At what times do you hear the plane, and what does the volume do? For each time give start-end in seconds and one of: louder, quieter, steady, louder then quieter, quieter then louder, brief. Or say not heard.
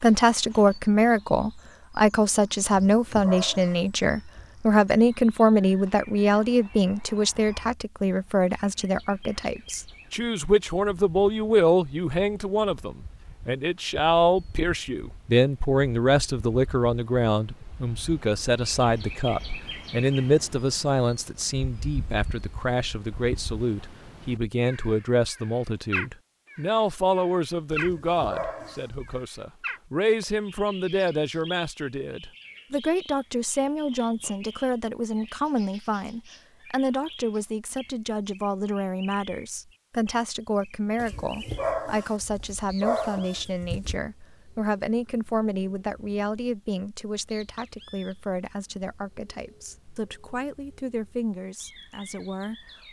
not heard.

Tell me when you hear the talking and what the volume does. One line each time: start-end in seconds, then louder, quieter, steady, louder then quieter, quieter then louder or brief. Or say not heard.
0.0-52.5 quieter.